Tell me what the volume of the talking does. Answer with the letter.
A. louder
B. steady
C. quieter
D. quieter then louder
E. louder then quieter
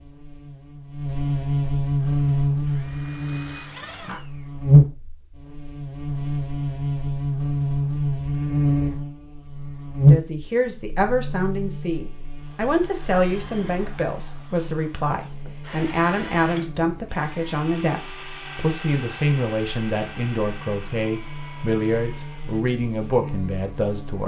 B.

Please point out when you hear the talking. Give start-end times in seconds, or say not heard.
10.1-24.2.